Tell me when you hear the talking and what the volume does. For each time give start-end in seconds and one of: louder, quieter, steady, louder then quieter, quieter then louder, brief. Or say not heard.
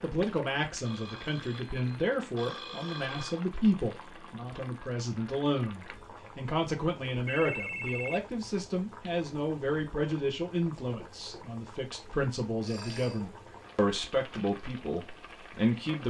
0.0-16.0 steady.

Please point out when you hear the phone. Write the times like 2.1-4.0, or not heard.
0.8-3.4, 7.3-8.4, 12.4-13.2.